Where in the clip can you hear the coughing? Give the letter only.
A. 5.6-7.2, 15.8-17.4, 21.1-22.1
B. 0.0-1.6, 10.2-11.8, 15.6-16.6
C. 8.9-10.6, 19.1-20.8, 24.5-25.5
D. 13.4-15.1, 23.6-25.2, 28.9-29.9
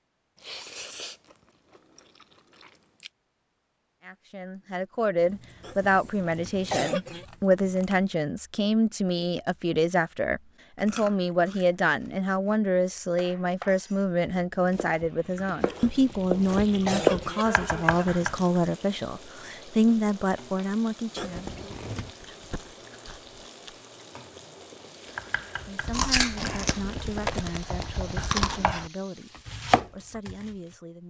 A.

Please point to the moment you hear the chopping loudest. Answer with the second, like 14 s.
17 s.